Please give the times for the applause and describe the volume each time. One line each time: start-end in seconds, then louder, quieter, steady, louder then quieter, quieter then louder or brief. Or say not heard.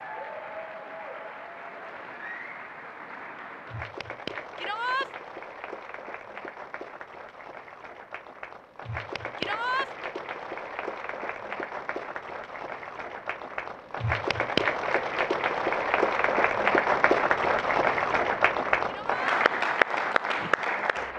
0.0-21.1 louder.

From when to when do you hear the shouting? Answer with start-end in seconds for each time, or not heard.
4.5-5.1, 9.3-9.9, 18.9-19.4.